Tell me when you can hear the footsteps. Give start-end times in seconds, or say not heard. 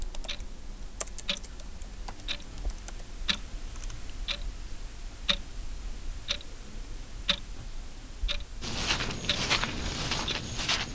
8.6-10.9.